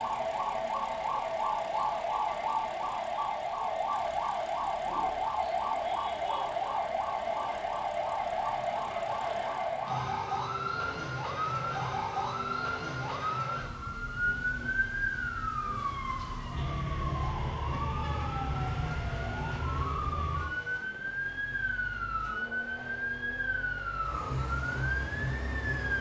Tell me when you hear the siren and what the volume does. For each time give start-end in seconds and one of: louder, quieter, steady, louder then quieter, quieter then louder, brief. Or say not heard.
0.0-25.9 steady.